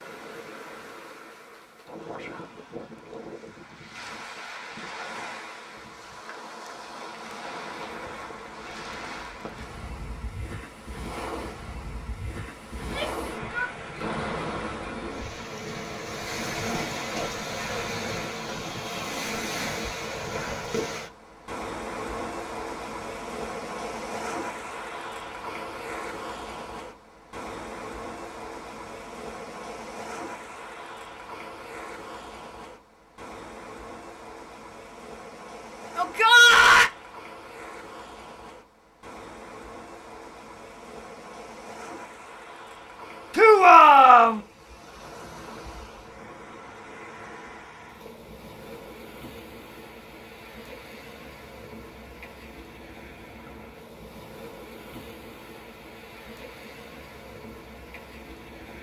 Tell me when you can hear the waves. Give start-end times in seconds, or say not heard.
0.0-58.7.